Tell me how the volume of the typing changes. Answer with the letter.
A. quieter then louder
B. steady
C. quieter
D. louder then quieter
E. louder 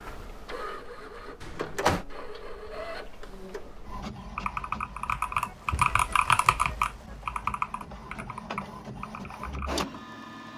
D.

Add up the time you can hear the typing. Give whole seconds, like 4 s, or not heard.
10 s.